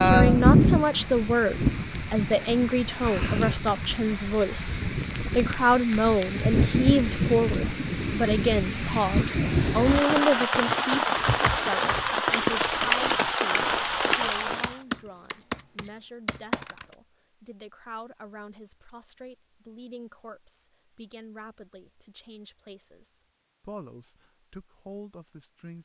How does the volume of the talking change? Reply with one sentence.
The loudness of the talking goes down.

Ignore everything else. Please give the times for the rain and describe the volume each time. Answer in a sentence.
The rain can be heard from 0.0 to 14.8 s, getting quieter then louder.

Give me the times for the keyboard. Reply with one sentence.
The keyboard can be heard from 10.5 to 16.9 s.